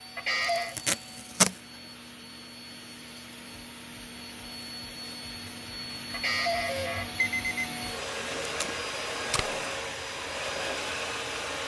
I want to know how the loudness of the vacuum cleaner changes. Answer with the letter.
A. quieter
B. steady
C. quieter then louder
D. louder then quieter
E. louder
E.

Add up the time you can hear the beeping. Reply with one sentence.
The beeping can be heard for 2 seconds in total.